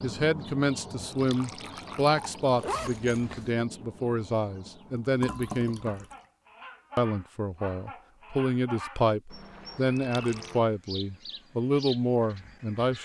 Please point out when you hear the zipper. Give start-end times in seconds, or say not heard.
2.6-3.5.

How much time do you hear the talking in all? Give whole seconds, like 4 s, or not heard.
12 s.